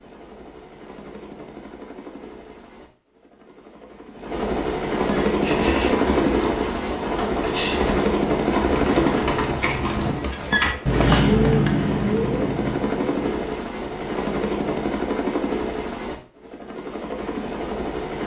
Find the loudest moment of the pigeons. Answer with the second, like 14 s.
11 s.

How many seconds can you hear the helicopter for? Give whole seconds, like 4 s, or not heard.
18 s.